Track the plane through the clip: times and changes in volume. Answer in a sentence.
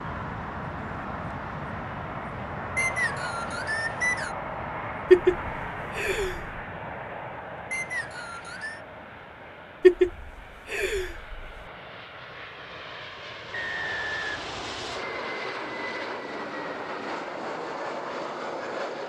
You can hear the plane from 0.0 to 19.0 s, getting quieter then louder.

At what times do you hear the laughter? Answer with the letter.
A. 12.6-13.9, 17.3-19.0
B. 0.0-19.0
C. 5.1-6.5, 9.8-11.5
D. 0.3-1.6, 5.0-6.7
C.